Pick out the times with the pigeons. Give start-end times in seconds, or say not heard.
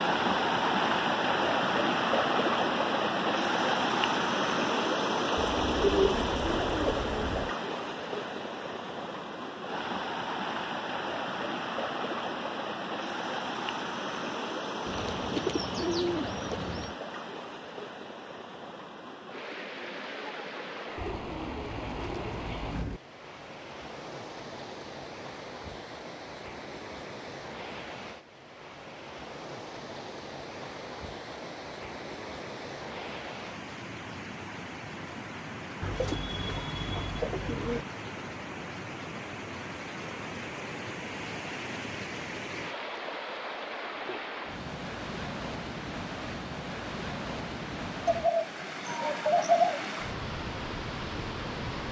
5.3-7.5, 14.8-16.9, 20.9-23.0, 35.8-37.9, 48.0-50.0.